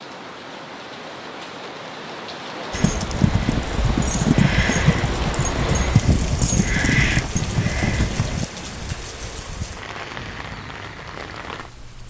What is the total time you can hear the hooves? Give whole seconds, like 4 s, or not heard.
6 s.